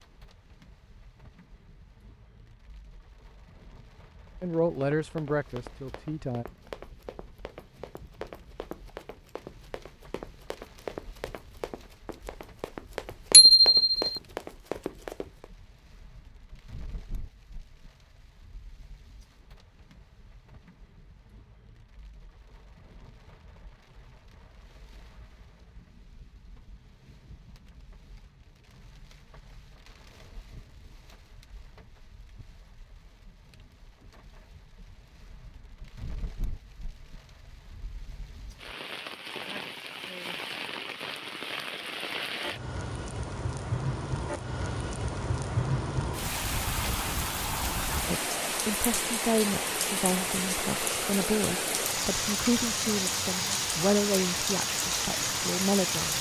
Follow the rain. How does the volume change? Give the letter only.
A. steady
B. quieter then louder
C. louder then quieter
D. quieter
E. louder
E.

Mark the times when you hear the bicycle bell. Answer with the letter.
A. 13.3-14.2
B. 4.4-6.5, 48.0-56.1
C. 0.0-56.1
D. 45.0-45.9
A.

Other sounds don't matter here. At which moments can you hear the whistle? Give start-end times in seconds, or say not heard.
not heard.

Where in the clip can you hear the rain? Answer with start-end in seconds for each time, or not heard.
0.0-56.1.